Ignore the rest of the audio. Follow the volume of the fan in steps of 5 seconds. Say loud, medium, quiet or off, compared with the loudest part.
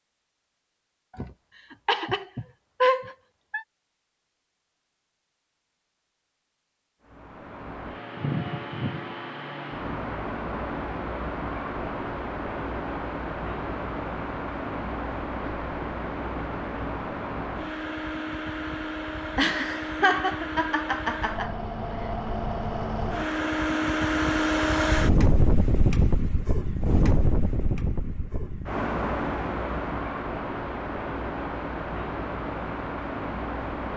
off, medium, medium, medium, loud, loud, medium.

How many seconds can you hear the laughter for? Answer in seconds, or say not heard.
5 s.